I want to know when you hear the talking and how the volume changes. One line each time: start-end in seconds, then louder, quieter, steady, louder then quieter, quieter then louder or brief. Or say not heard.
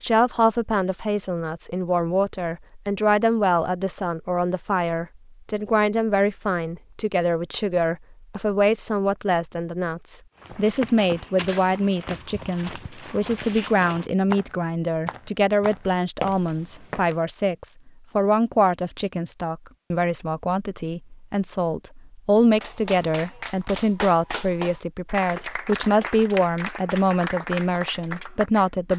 0.0-28.9 steady.